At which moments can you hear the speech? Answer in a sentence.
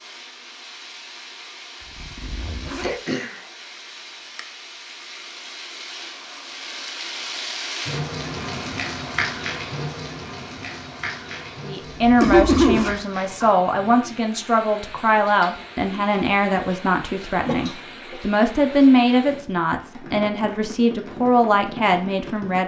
You can hear the speech from 11.6 to 22.6 s.